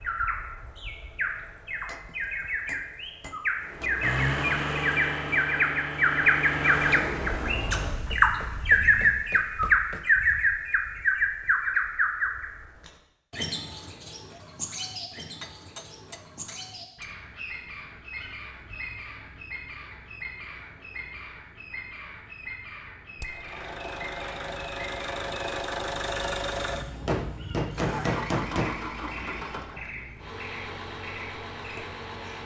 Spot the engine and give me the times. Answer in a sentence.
The engine can be heard from 3.6 to 9.2 s and from 23.2 to 32.4 s.